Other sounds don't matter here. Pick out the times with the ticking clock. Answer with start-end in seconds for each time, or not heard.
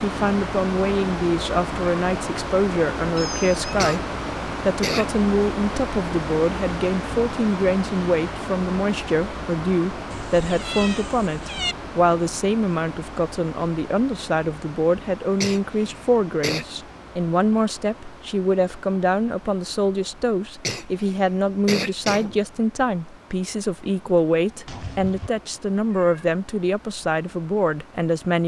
not heard.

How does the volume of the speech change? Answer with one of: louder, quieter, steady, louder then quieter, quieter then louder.
steady.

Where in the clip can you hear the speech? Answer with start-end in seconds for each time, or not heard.
0.0-4.0, 4.7-28.4.